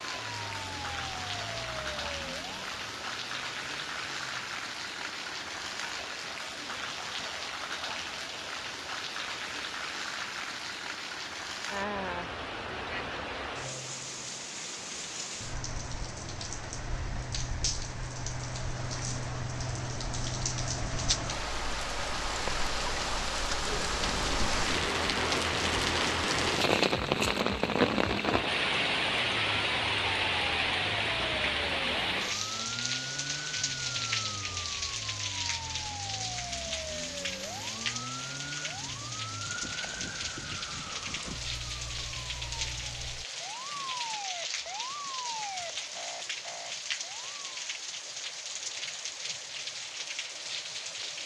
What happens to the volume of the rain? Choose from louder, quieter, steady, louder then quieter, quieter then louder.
louder then quieter.